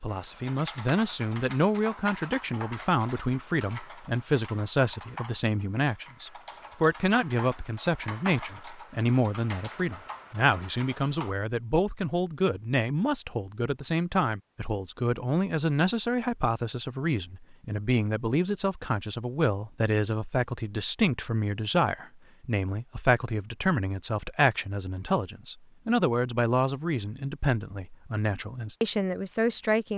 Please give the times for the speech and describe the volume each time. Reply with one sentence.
You can hear the speech from 0.0 to 29.9 s, at a steady volume.